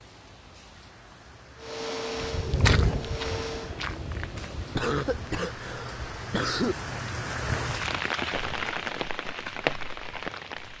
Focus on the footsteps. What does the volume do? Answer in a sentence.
The loudness of the footsteps goes down, then up.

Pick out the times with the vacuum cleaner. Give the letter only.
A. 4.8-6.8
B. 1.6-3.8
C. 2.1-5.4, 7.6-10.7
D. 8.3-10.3
B.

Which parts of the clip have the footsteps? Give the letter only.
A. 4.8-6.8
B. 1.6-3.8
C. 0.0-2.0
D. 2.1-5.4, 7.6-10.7
D.